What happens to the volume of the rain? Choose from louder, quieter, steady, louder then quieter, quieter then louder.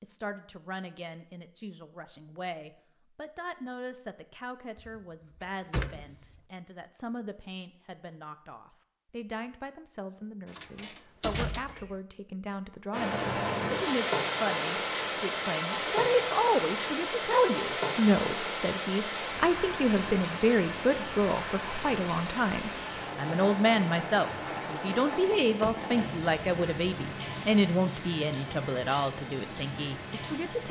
quieter.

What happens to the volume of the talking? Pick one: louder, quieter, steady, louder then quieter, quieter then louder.
louder.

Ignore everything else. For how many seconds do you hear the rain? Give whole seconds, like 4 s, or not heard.
18 s.